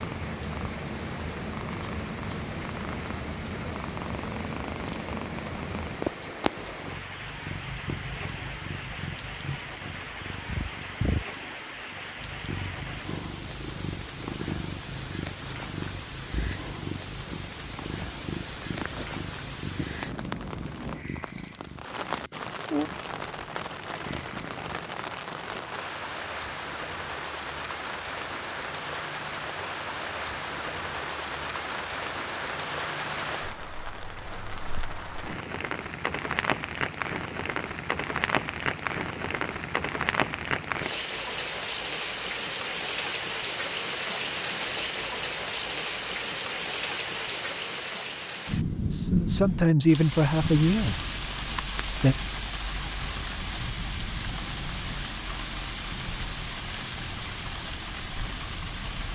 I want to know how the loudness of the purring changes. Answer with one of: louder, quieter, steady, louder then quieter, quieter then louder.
steady.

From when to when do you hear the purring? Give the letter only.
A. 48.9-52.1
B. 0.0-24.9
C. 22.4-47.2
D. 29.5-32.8
B.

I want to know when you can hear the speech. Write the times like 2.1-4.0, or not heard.
48.9-52.1.